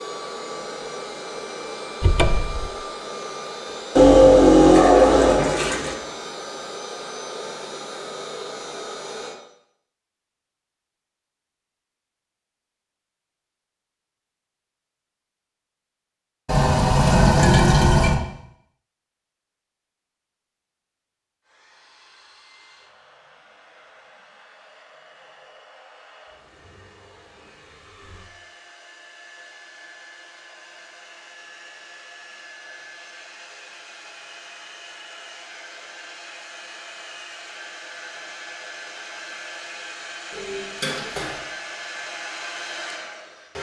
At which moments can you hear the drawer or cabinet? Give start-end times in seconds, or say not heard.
2.0-2.7.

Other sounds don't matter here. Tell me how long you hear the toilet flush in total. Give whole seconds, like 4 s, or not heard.
5 s.